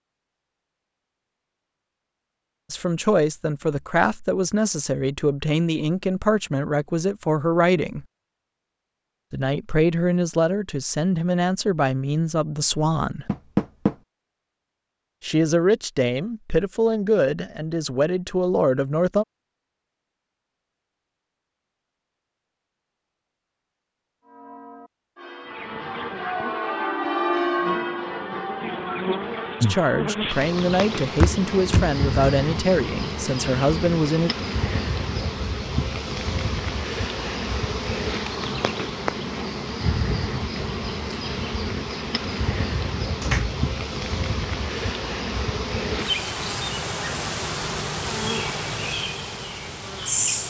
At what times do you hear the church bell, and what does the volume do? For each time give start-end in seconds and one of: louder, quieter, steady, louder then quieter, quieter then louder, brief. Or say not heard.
24.2-29.8 louder then quieter.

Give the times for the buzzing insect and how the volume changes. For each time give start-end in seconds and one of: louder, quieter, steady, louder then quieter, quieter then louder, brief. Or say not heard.
25.5-50.4 steady.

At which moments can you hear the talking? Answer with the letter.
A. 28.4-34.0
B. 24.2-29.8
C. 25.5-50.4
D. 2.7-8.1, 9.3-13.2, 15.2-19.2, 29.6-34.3
D.